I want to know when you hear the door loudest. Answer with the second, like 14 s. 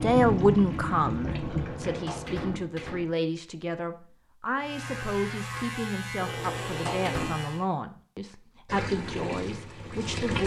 7 s.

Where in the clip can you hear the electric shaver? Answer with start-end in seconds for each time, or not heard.
4.6-7.7.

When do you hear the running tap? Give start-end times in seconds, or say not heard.
0.0-2.6, 8.7-10.4.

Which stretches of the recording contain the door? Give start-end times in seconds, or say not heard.
1.4-3.1, 6.2-7.4.